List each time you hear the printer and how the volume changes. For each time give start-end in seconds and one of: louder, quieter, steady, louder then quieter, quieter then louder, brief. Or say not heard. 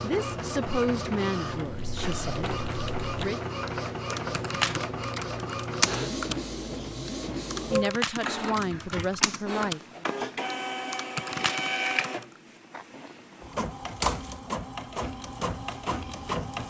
0.0-16.6 steady.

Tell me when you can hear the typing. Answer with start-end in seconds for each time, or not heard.
1.6-12.2.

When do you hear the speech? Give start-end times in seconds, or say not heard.
0.0-3.4, 7.7-10.1.